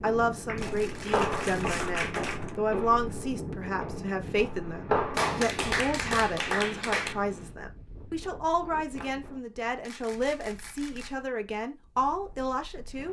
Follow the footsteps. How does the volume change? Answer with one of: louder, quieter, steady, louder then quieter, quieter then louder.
quieter.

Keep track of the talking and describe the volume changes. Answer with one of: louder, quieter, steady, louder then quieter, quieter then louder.
steady.